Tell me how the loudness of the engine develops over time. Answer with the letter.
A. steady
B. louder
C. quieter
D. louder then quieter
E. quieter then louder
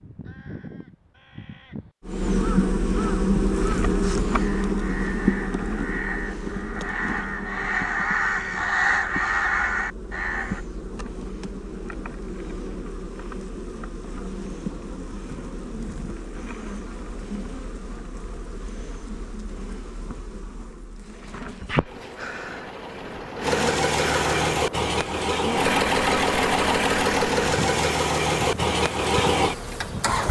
B.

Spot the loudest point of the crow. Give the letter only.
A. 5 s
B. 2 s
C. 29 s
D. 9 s
D.